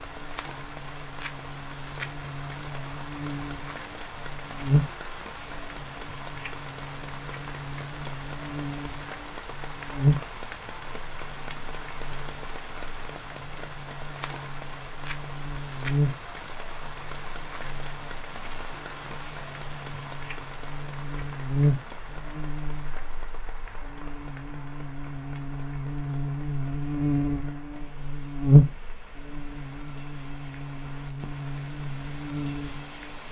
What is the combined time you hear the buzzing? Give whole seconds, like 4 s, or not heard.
33 s.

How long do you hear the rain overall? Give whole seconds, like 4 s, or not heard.
33 s.